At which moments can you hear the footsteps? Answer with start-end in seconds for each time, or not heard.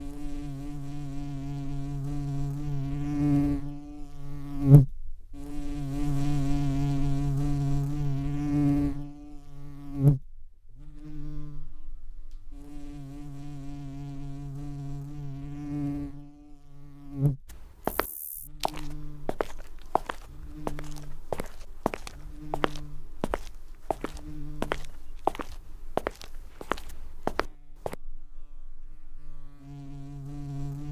17.4-27.9.